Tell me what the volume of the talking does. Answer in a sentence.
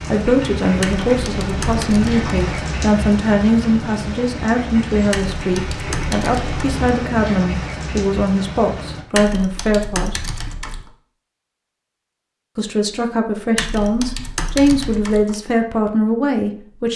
The volume of the talking stays about the same.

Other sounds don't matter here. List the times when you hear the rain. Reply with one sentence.
You can hear the rain from 0.0 to 9.1 s.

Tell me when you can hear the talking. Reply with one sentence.
You can hear the talking from 0.0 to 10.2 s and from 12.6 to 16.9 s.